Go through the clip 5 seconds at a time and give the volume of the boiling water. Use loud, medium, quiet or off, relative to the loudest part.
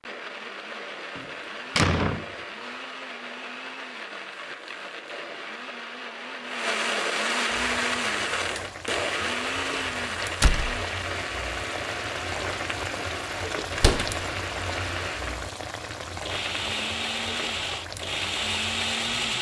off, medium, loud, loud.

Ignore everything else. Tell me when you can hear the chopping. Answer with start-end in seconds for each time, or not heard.
not heard.